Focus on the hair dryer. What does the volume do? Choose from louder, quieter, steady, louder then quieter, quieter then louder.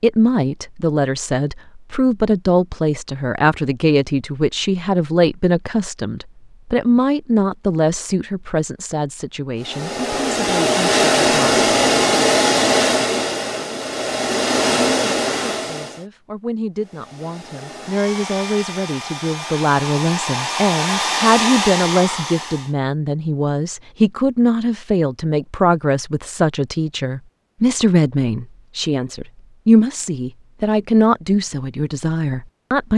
quieter then louder.